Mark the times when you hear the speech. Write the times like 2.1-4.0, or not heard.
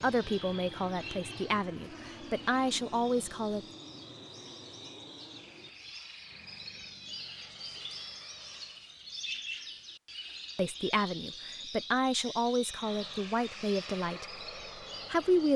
0.0-3.6, 10.6-14.4, 15.1-15.5.